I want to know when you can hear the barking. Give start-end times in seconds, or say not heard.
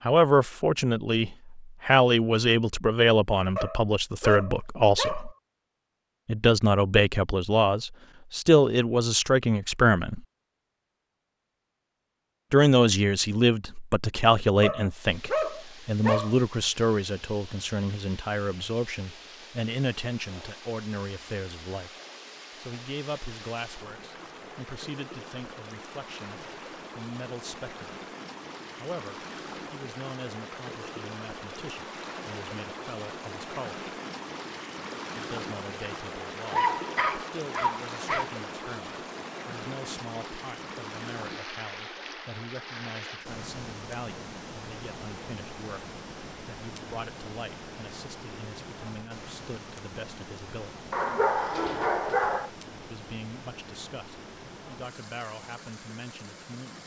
3.5-5.3, 14.6-16.4, 36.5-38.3, 50.9-52.5.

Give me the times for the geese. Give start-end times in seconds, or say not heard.
not heard.